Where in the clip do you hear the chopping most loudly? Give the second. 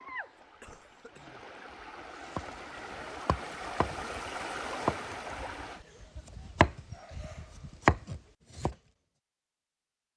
8 s.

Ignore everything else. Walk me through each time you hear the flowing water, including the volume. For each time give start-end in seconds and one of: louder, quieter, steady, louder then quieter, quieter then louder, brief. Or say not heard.
0.0-5.8 louder.